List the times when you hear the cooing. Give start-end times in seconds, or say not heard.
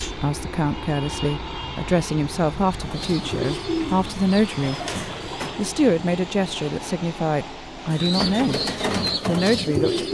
2.7-5.6, 7.8-10.0.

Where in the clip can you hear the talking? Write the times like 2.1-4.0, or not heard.
0.0-4.8, 5.5-8.6, 9.2-10.0.